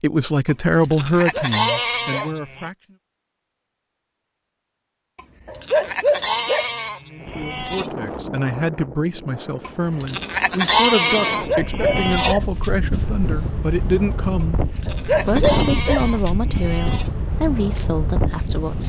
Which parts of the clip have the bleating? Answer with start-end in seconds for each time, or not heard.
0.5-2.7, 5.2-7.9, 9.7-12.3, 14.4-17.1.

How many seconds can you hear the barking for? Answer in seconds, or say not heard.
5 s.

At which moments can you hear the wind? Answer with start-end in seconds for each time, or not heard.
7.2-18.8.